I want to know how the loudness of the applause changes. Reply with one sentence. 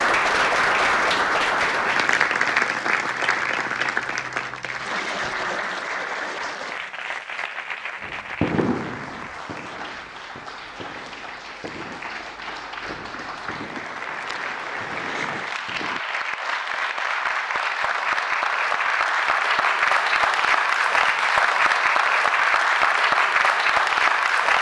The volume of the applause goes down, then up.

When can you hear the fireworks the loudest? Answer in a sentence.
The loudest moment of the fireworks is at 9 seconds.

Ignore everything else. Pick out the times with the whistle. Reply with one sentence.
You can't hear the whistle here.